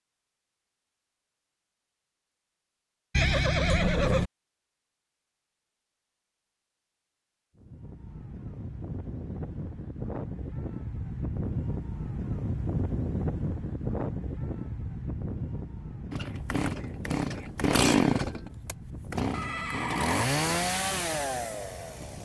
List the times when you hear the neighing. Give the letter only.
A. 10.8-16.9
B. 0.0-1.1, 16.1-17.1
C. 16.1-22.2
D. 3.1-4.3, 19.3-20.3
D.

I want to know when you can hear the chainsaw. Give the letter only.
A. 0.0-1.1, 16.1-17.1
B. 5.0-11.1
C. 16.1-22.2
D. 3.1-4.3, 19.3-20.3
C.